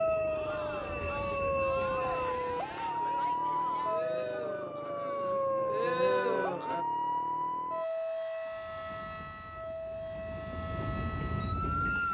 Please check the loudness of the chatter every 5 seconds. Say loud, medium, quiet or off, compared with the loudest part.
medium, loud, off.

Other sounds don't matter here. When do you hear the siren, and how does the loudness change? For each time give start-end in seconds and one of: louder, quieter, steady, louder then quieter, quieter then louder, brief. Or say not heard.
0.0-12.0 quieter.